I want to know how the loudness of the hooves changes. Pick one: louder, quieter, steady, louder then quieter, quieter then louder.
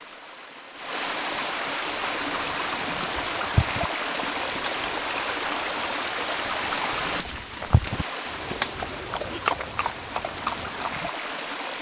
quieter then louder.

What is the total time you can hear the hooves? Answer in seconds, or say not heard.
9 s.